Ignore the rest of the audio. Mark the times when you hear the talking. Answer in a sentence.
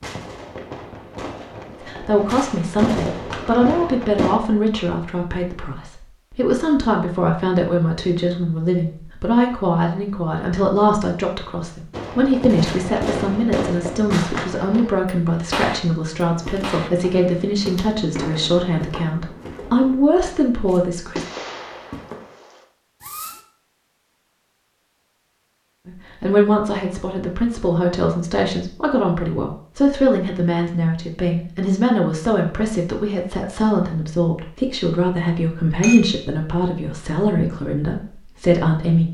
The talking can be heard from 1.8 to 21.2 s and from 25.9 to 39.0 s.